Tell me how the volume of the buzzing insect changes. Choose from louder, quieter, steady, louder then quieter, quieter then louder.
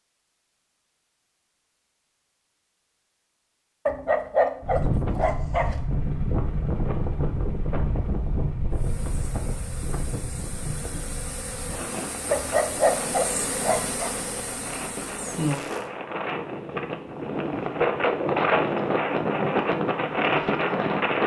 louder.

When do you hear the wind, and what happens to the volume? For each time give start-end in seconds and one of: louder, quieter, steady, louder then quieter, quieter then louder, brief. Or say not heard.
4.6-21.2 quieter then louder.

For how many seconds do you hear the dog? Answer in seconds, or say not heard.
4 s.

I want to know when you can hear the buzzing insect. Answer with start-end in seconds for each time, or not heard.
8.7-15.9.